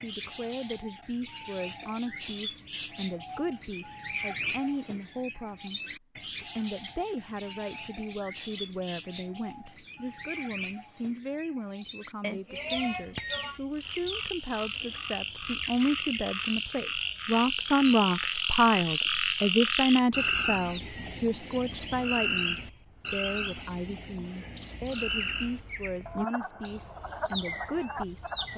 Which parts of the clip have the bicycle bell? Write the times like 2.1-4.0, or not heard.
12.2-13.6.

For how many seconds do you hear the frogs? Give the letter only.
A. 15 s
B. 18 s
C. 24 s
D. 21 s
A.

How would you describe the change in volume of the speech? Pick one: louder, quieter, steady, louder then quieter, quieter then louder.
louder then quieter.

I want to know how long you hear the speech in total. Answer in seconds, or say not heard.
28 s.